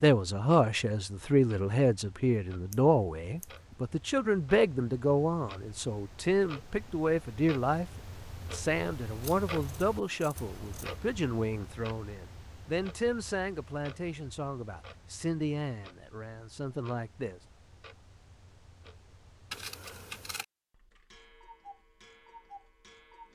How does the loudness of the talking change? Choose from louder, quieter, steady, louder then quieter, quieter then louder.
quieter.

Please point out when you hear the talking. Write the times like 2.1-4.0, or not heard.
0.0-17.4.